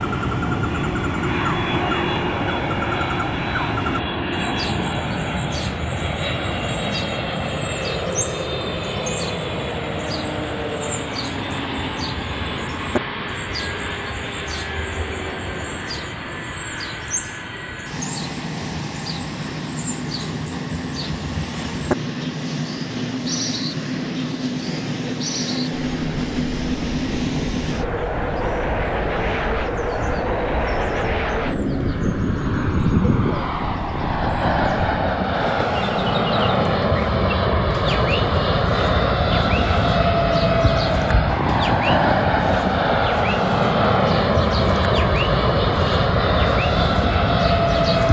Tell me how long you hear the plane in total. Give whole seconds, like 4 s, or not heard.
48 s.